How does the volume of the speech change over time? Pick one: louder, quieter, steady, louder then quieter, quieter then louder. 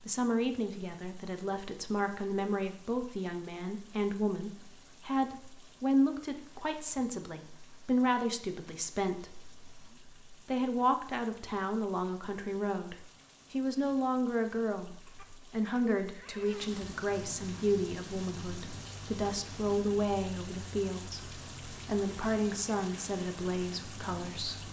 steady.